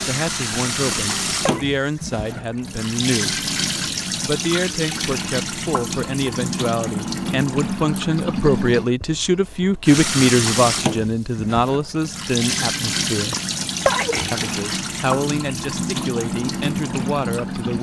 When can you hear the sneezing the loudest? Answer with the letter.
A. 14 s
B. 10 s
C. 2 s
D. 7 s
A.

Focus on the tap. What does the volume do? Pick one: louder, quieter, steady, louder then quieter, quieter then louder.
steady.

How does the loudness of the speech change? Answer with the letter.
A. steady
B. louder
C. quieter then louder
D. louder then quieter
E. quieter
D.